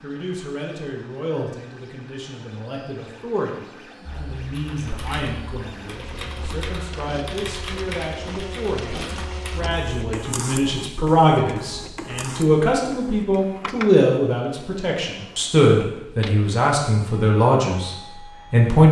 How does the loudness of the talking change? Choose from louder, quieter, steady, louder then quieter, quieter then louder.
louder.